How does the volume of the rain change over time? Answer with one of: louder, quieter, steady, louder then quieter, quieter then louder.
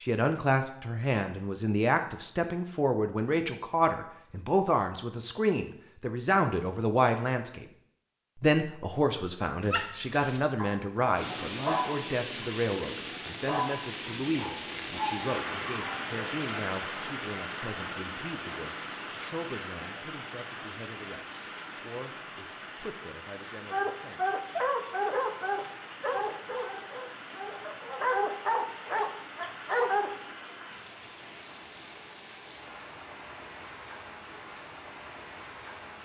quieter.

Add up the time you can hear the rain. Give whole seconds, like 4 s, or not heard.
25 s.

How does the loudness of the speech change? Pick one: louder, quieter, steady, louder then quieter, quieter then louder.
quieter.